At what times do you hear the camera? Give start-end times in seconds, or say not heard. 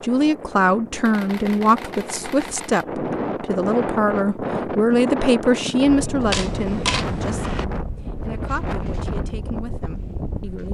1.1-2.9, 6.3-7.7.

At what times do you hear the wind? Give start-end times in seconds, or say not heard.
0.0-10.6.